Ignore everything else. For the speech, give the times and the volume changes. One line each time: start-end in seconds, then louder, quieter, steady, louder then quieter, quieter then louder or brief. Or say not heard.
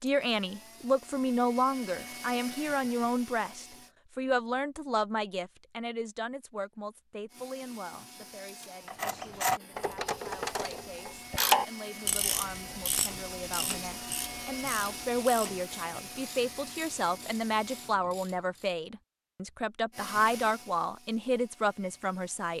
0.0-22.5 quieter then louder.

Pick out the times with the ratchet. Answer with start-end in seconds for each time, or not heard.
8.8-18.8.